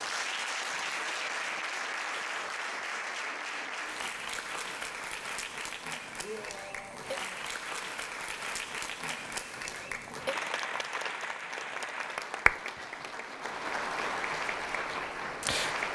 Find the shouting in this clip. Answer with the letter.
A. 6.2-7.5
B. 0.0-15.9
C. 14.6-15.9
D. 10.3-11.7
A.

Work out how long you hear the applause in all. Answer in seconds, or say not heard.
16 s.